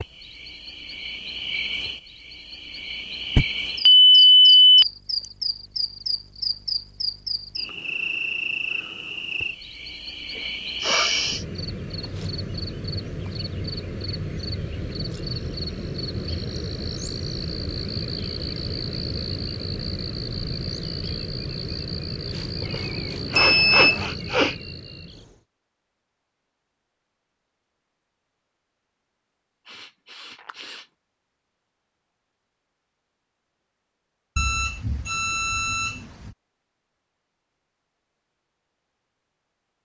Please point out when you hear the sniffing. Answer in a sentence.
You can hear the sniffing from 10.3 to 11.4 s, from 22.6 to 24.6 s and from 29.6 to 30.9 s.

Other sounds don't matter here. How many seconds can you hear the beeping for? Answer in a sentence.
The beeping can be heard for 4 seconds in total.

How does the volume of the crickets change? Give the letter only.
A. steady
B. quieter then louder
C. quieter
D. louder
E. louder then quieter
A.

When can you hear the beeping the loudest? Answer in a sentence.
The volume of the beeping peaks at 4 seconds.